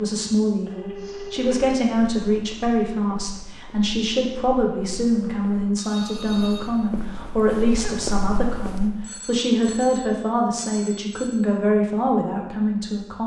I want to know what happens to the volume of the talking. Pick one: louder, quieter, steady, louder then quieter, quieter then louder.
steady.